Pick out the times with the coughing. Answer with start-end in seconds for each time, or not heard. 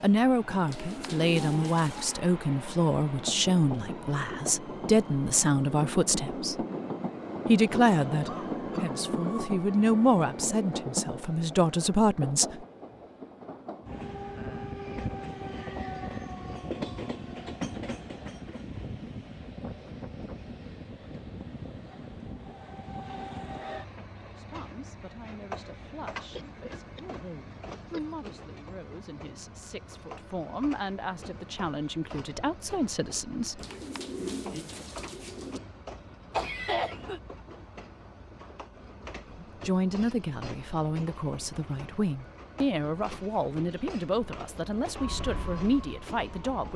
7.7-9.0, 26.4-28.3, 36.3-37.2.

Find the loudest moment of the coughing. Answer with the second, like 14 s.
37 s.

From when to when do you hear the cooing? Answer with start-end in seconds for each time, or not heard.
0.7-2.1, 33.5-35.6.